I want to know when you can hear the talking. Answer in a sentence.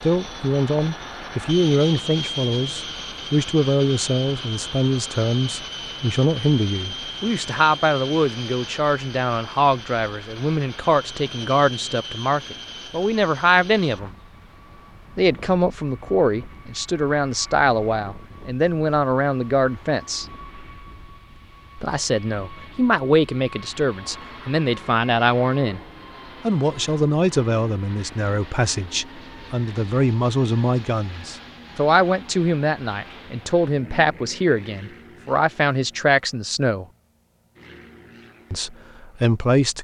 You can hear the talking from 0.0 to 14.1 s, from 15.2 to 20.2 s, from 21.8 to 25.8 s, from 26.4 to 36.9 s and from 38.5 to 39.7 s.